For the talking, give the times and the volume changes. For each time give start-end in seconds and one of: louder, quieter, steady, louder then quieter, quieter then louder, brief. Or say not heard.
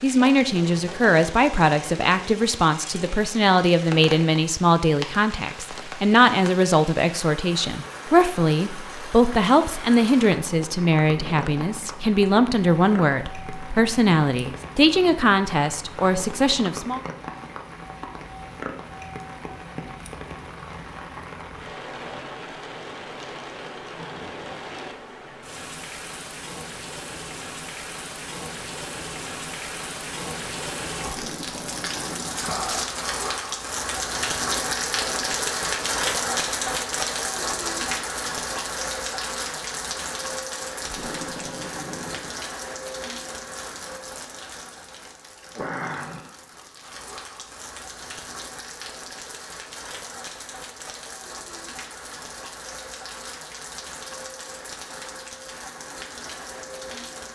0.0-17.0 steady.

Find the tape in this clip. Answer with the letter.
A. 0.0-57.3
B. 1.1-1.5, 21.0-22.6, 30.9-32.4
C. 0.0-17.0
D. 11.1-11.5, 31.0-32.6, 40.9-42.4
D.